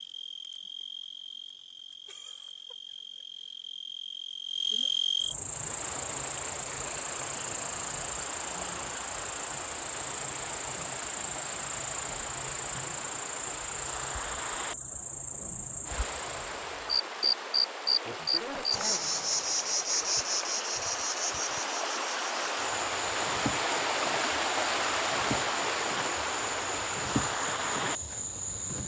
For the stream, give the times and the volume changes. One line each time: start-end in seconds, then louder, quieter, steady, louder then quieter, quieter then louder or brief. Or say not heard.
5.3-28.8 louder.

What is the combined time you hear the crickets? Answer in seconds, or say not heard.
29 s.